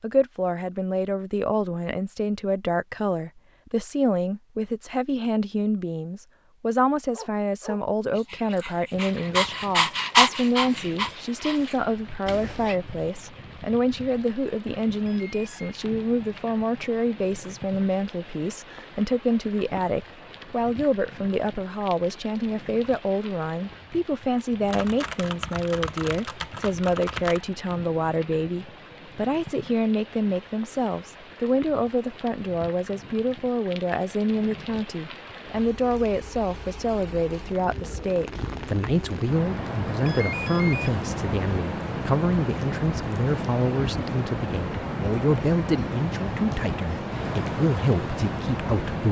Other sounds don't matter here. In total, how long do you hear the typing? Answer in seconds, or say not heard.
3 s.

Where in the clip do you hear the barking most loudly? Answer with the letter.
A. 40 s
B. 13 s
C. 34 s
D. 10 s
D.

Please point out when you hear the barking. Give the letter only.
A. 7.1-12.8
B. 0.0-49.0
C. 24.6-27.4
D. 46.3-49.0
A.